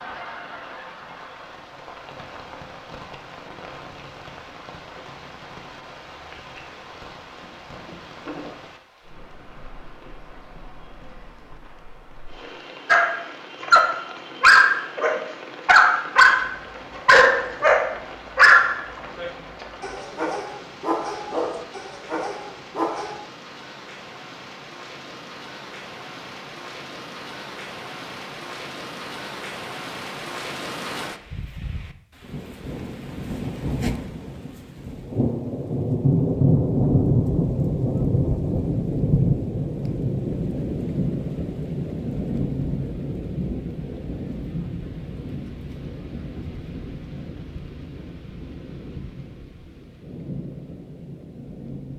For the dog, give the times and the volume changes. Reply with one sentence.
The dog can be heard from 12.8 to 23.2 s, getting quieter.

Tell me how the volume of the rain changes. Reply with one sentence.
The volume of the rain goes up, then down.